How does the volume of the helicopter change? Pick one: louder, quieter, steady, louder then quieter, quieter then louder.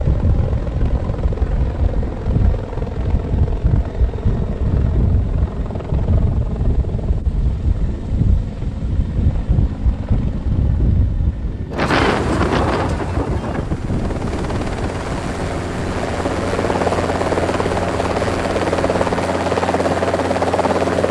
louder.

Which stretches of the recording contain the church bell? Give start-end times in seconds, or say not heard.
not heard.